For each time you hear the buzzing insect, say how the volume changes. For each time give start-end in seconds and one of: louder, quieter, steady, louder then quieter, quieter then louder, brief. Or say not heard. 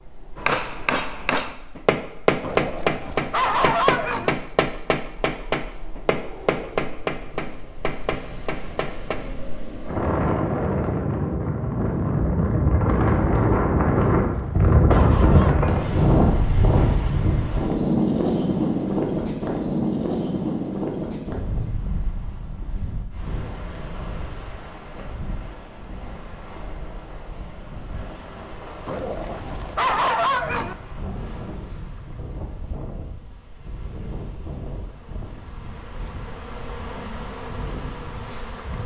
31.1-38.8 quieter then louder.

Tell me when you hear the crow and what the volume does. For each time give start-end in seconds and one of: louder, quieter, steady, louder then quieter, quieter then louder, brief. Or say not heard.
not heard.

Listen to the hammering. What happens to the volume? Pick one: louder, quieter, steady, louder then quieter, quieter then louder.
quieter.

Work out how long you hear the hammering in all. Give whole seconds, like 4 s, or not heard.
9 s.